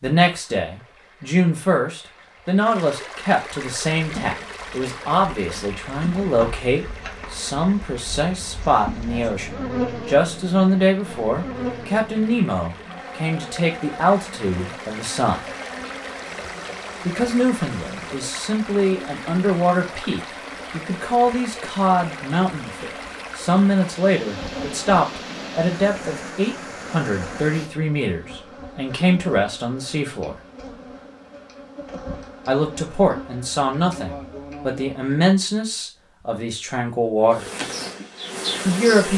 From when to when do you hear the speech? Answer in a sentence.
The speech can be heard from 0.0 to 15.5 s, from 17.1 to 30.4 s, from 32.5 to 37.7 s and from 38.6 to 39.1 s.